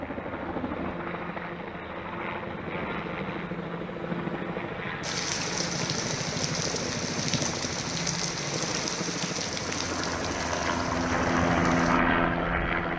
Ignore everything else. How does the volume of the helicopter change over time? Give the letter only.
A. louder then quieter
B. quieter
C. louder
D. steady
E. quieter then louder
C.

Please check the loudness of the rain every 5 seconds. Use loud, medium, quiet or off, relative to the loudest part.
off, loud, medium.